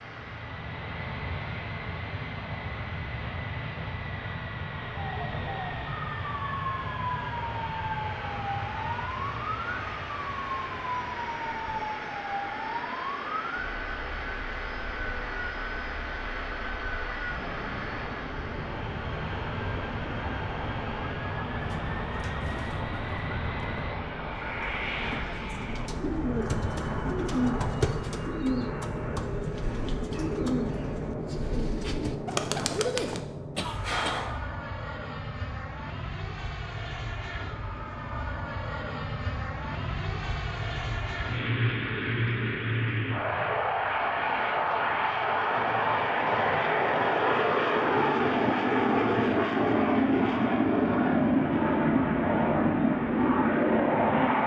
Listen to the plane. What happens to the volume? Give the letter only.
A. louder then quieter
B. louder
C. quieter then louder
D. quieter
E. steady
B.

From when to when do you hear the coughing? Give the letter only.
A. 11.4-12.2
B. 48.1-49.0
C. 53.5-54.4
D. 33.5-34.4
D.